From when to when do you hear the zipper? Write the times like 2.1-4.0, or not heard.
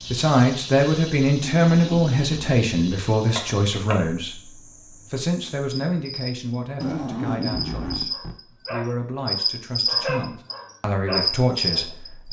1.4-2.6, 6.8-8.3.